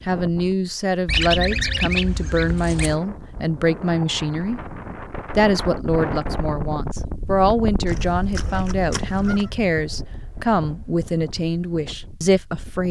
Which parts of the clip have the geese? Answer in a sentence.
You can hear the geese from 1.1 to 3.0 s and from 7.8 to 9.5 s.